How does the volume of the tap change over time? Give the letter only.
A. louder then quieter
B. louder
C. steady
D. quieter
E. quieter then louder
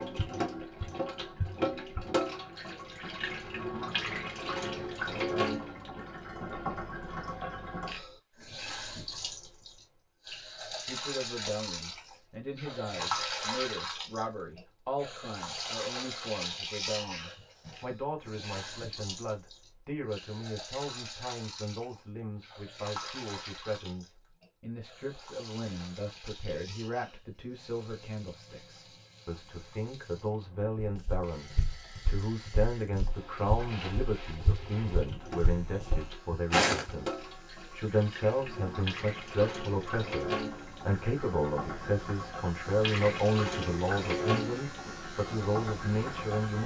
E.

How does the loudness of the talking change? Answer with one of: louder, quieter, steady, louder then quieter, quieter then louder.
louder.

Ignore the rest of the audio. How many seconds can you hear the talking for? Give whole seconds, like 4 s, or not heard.
36 s.